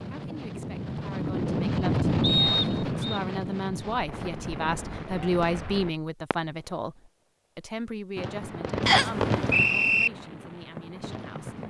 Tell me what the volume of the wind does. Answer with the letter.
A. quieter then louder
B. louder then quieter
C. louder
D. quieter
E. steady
B.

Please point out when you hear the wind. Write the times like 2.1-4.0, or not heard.
0.0-6.0.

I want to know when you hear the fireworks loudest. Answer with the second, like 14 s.
9 s.